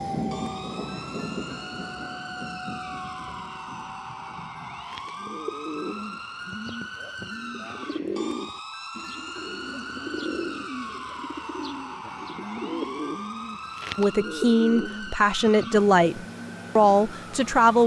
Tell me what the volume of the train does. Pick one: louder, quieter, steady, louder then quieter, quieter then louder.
quieter.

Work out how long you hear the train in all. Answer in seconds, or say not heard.
5 s.